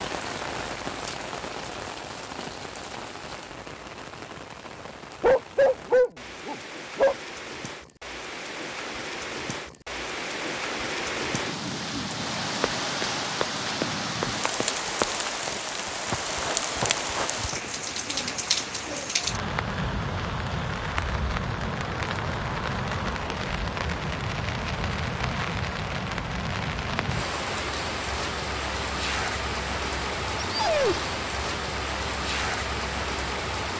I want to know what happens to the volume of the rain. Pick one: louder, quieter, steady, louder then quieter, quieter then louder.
louder.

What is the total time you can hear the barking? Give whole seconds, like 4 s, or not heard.
3 s.